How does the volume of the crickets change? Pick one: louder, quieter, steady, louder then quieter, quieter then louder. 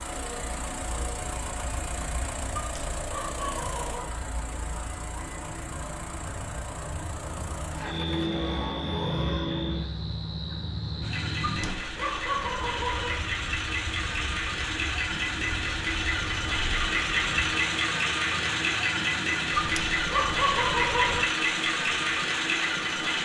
louder then quieter.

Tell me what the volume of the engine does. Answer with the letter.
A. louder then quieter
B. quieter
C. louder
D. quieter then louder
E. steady
C.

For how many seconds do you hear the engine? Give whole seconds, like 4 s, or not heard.
23 s.